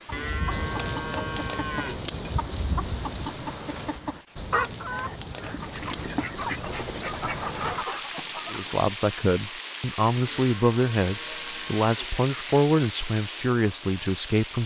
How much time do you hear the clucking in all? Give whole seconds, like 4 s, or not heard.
9 s.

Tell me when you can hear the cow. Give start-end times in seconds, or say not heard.
0.1-2.0, 10.2-12.2.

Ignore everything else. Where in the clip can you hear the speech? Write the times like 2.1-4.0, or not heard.
8.5-14.6.